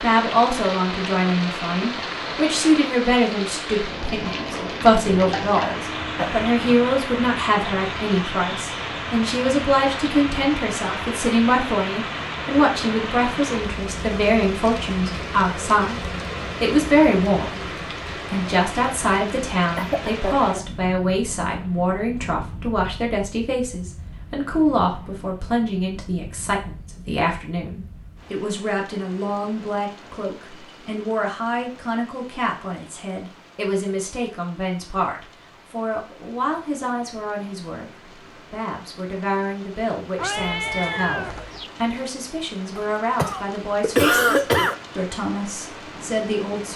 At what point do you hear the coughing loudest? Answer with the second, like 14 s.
44 s.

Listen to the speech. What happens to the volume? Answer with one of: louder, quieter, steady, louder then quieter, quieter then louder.
quieter.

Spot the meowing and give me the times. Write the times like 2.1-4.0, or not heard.
40.1-41.7.